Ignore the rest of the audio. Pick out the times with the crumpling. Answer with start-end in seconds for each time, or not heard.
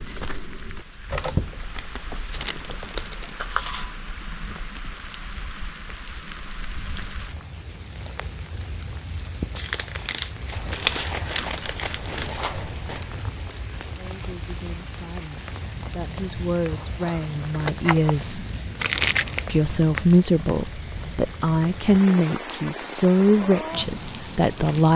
1.1-3.4, 9.6-12.3, 18.8-19.4.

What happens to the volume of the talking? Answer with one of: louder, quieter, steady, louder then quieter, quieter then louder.
louder.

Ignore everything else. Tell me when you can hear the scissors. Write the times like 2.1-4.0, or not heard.
3.4-4.0, 10.5-13.2, 16.6-18.1.